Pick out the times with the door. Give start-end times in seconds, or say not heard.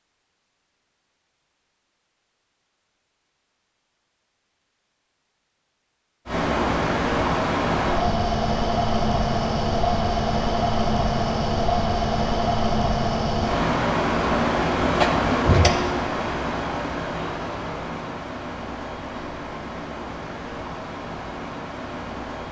14.8-15.7.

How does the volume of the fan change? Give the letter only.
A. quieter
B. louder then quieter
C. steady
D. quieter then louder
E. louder
A.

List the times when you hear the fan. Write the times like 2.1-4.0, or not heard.
6.2-22.4.